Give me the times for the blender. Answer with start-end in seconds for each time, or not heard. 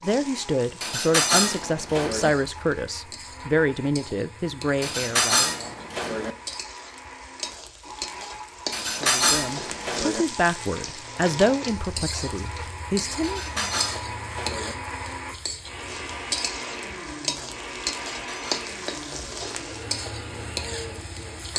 0.0-21.5.